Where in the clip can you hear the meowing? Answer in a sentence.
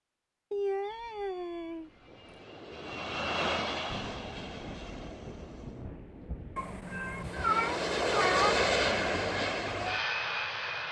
You can hear the meowing from 0.5 to 2.4 s and from 6.5 to 8.6 s.